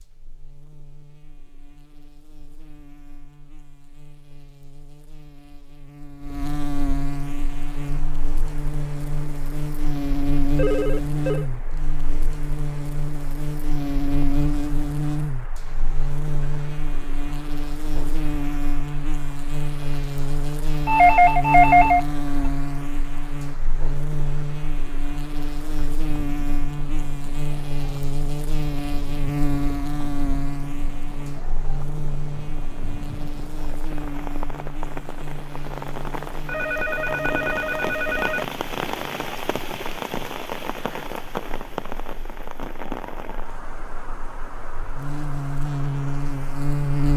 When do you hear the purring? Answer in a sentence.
You can't hear the purring here.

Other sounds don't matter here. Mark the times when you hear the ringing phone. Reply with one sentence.
The ringing phone can be heard from 10.5 to 11.5 s, from 20.9 to 22.1 s and from 36.5 to 38.5 s.